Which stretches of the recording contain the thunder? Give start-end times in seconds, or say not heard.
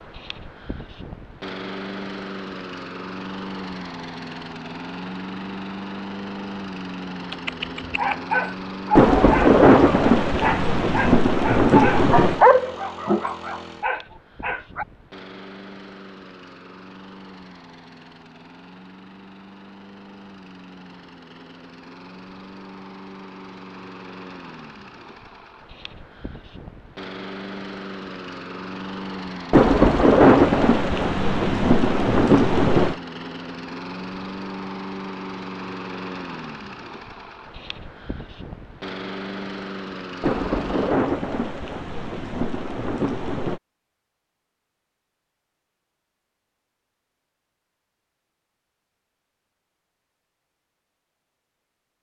8.9-12.4, 29.5-33.0, 40.2-43.6.